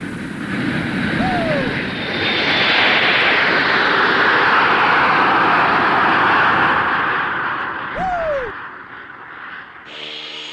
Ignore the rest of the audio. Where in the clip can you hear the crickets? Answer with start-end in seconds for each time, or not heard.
not heard.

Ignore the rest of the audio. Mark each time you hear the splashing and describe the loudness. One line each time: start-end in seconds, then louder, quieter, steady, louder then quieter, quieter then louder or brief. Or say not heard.
not heard.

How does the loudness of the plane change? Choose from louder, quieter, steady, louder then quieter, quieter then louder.
louder then quieter.